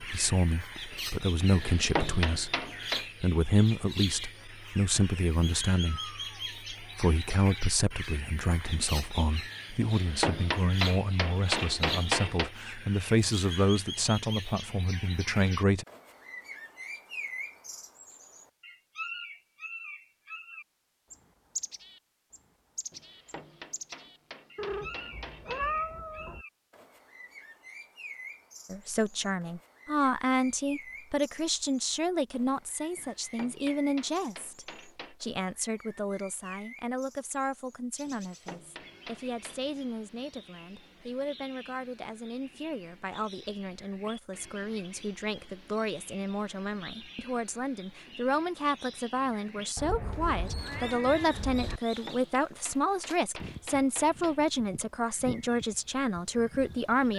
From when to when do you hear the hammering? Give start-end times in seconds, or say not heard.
1.5-3.0, 9.8-12.5, 22.9-25.8, 33.0-35.1, 38.0-39.7, 51.9-54.4.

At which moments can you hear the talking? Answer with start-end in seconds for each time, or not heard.
0.0-2.5, 3.2-6.1, 6.8-15.8, 28.7-57.1.